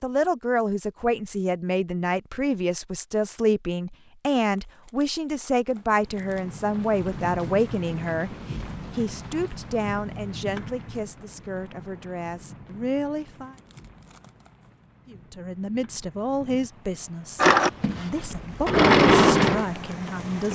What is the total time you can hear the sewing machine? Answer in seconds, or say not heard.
3 s.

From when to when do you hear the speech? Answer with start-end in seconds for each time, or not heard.
0.0-13.6, 15.1-20.5.